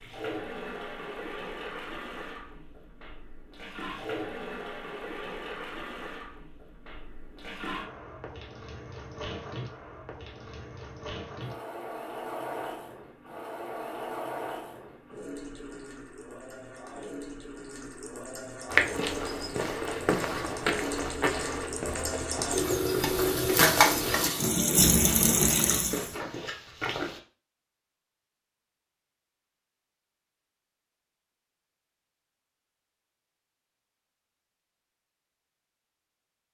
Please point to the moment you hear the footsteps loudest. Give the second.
19 s.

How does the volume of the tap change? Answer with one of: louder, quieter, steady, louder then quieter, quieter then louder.
louder.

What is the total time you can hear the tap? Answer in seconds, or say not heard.
26 s.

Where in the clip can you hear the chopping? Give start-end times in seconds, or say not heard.
not heard.